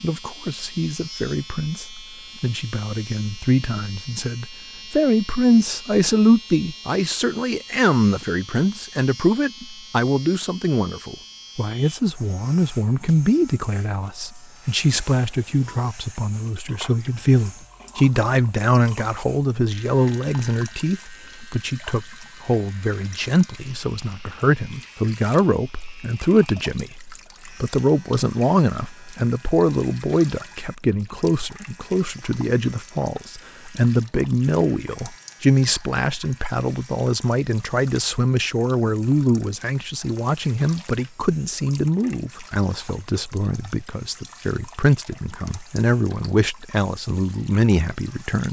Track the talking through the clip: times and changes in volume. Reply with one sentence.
You can hear the talking from 0.0 to 48.4 s, at a steady volume.